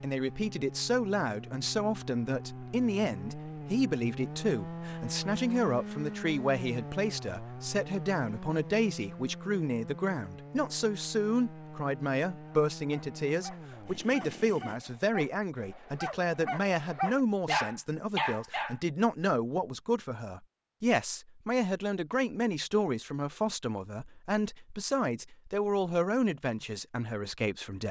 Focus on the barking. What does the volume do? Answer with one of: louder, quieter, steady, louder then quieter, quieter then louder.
louder.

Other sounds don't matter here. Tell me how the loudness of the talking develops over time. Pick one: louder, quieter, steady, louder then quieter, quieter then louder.
steady.